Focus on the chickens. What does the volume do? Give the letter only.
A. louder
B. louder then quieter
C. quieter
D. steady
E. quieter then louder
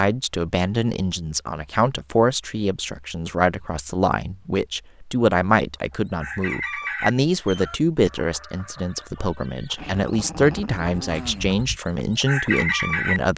E.